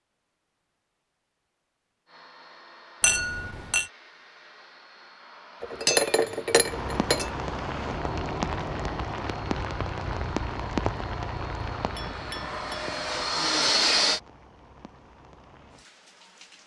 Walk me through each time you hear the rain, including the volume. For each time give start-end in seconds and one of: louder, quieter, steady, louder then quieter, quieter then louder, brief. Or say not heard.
6.5-16.6 quieter.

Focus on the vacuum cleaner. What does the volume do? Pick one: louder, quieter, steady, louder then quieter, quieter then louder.
louder.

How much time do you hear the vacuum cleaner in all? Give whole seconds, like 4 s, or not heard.
12 s.